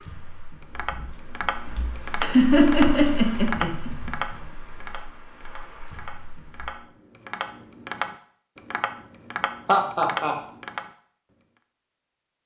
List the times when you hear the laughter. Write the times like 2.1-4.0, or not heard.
2.2-4.1, 9.7-10.3.